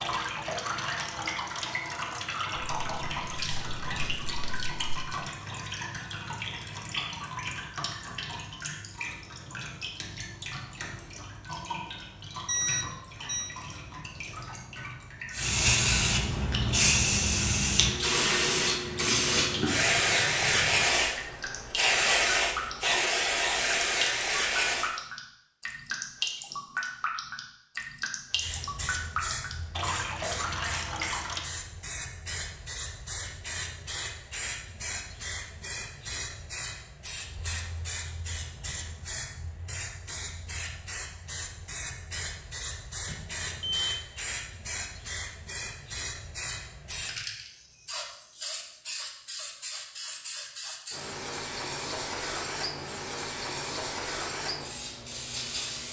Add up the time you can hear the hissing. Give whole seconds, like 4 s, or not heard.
37 s.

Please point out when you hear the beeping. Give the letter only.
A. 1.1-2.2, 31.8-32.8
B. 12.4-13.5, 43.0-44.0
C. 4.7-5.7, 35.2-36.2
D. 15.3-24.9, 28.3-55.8
B.